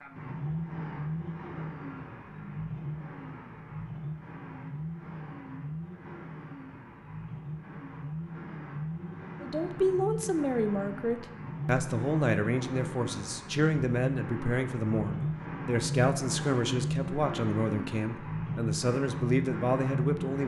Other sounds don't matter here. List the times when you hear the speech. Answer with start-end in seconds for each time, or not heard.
9.4-20.4.